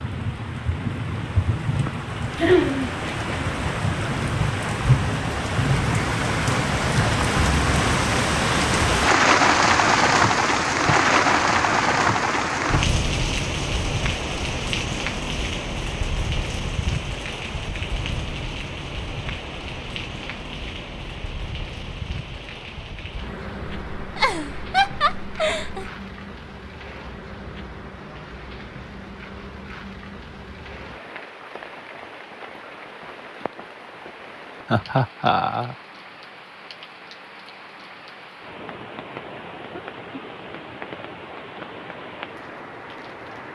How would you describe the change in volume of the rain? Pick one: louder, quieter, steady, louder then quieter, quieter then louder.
quieter.